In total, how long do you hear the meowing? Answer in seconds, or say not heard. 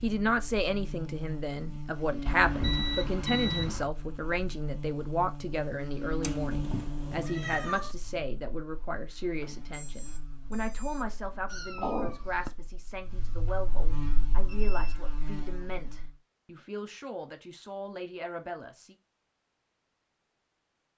3 s.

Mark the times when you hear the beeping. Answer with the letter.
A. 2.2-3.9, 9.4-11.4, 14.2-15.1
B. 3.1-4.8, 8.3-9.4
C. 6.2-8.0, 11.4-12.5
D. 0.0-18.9
A.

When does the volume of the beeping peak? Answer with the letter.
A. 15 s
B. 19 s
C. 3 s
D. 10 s
C.